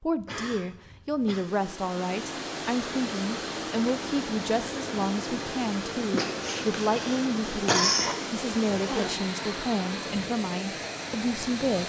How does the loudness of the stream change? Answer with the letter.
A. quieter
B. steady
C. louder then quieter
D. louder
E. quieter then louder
B.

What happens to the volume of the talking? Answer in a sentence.
The loudness of the talking stays about the same.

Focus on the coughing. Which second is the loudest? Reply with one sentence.
The volume of the coughing peaks at 8 seconds.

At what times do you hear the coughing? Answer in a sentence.
You can hear the coughing from 0.1 to 1.4 s and from 6.1 to 8.2 s.